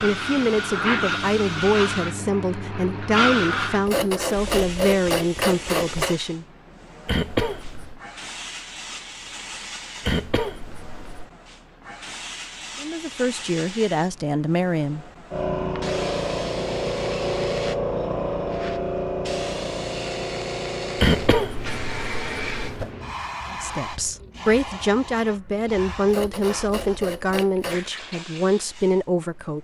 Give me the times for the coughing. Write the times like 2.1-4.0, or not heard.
7.0-8.0, 10.0-11.3, 20.9-22.9.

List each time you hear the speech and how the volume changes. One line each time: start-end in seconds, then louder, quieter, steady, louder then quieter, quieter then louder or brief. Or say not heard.
0.0-6.5 steady
12.8-15.1 brief
23.5-29.5 steady.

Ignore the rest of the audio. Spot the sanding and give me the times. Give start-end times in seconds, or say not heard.
3.9-6.2, 26.1-27.9.